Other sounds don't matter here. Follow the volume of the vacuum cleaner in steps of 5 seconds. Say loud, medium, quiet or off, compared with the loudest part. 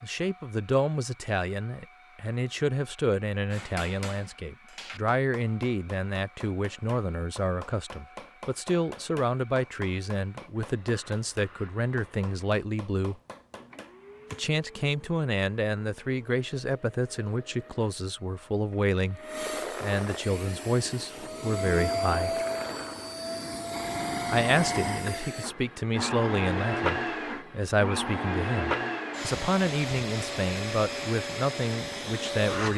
quiet, quiet, quiet, medium, loud, loud, loud.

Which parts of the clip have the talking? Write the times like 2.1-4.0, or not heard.
0.0-13.2, 14.3-19.2, 19.8-22.4, 24.3-32.7.